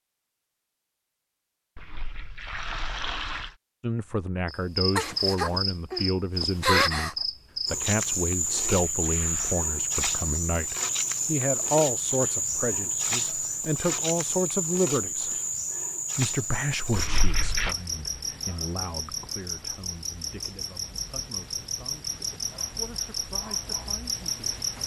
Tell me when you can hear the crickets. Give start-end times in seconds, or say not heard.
4.5-24.8.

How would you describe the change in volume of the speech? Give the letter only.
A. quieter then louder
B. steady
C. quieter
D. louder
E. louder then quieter
C.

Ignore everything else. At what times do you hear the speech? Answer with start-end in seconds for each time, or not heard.
3.8-15.3, 16.1-24.6.